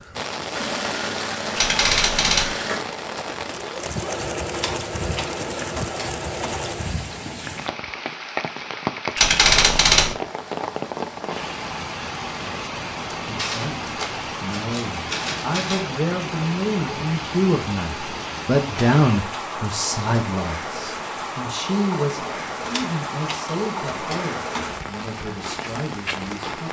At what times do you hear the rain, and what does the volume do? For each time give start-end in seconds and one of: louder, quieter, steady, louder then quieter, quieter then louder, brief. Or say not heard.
0.0-26.6 steady.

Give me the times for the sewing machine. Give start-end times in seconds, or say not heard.
0.5-7.0.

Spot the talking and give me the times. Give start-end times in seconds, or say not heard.
13.2-26.6.